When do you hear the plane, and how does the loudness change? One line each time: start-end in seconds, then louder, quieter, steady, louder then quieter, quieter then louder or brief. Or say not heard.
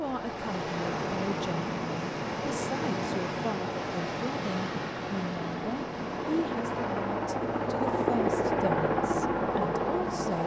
0.0-10.4 louder.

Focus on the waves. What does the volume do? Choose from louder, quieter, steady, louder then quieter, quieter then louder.
quieter.